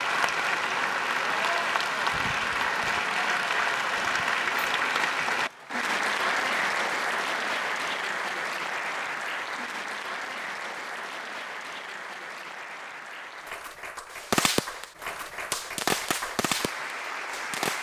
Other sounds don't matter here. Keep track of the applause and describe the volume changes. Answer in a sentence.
The volume of the applause goes down.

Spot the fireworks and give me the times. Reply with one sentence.
The fireworks can be heard from 14.1 to 17.7 s.